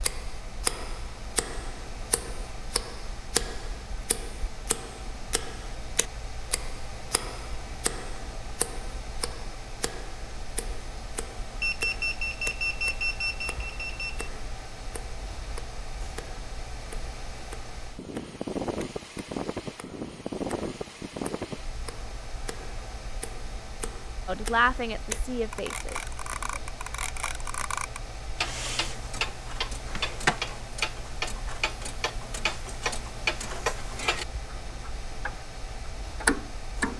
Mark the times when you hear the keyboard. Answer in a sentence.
You can't hear the keyboard here.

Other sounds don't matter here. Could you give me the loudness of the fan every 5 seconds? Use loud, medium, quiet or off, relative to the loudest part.
medium, medium, medium, loud, loud, medium, medium, medium.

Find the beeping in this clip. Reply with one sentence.
You can hear the beeping from 11.6 to 14.3 s.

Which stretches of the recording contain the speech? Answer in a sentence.
You can hear the speech from 24.2 to 26.8 s.